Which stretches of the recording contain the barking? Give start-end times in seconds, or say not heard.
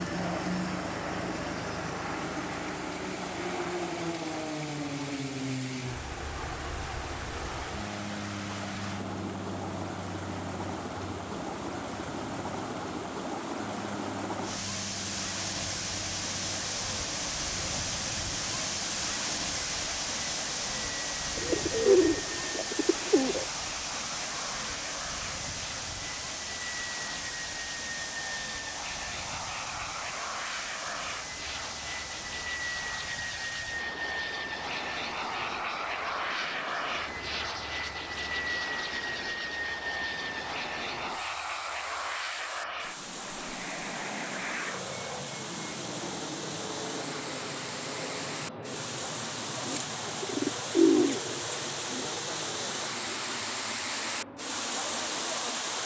not heard.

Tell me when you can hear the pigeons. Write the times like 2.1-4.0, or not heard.
21.4-23.4, 49.6-52.0.